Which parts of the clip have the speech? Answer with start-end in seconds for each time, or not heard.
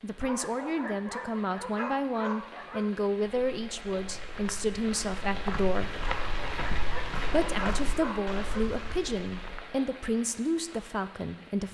0.0-6.0, 7.3-11.7.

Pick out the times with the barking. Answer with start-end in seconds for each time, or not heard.
0.2-2.9, 6.0-8.7.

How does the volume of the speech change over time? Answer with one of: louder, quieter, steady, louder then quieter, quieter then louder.
steady.